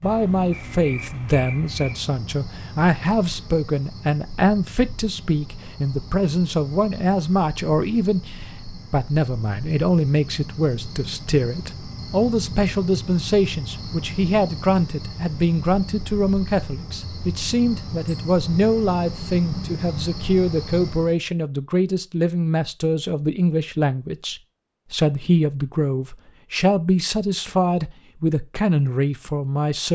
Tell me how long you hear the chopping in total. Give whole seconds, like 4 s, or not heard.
not heard.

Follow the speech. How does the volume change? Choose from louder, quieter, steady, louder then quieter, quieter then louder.
steady.